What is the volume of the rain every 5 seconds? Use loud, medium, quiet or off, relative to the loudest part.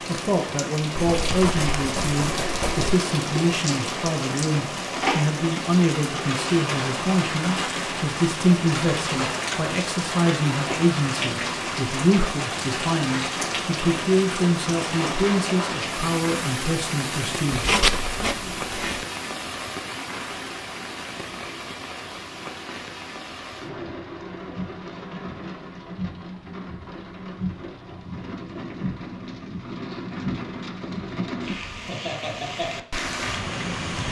loud, loud, loud, loud, medium, medium, loud.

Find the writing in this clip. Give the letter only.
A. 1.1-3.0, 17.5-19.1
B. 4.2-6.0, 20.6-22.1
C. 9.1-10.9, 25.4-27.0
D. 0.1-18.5
A.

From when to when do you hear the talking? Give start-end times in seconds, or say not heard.
0.1-18.5.